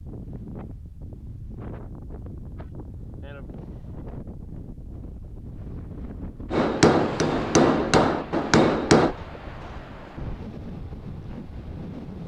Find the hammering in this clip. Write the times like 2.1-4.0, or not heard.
6.5-9.2.